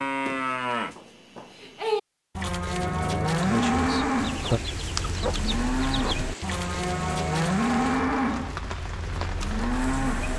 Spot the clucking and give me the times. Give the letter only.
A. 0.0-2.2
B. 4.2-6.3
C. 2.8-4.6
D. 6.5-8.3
B.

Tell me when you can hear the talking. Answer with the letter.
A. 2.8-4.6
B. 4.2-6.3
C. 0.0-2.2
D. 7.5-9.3
A.